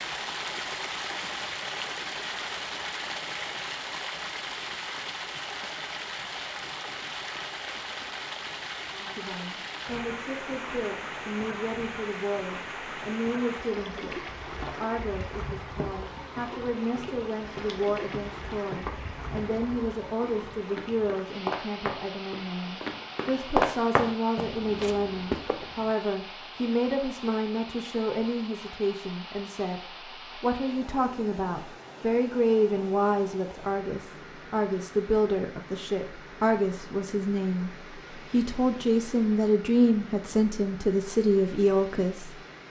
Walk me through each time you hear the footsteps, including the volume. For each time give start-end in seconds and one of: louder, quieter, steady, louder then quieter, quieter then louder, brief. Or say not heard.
14.4-25.9 louder.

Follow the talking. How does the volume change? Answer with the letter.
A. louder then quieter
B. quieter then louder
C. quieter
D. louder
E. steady
D.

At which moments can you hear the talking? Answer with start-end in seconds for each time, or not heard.
8.9-42.4.